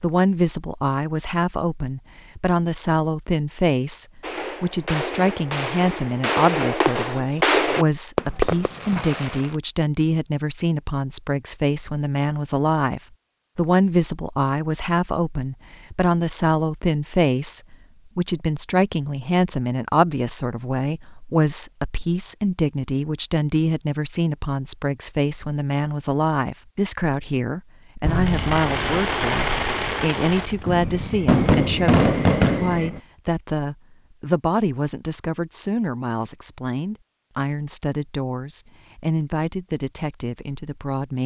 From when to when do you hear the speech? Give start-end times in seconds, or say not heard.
0.0-41.2.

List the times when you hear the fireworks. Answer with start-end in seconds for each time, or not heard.
4.2-9.6, 28.0-33.0.